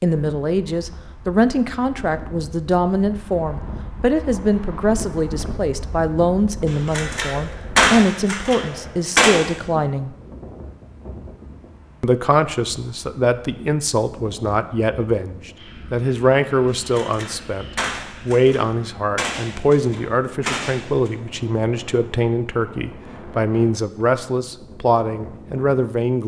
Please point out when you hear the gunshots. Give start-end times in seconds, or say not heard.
6.7-9.4, 16.9-21.1.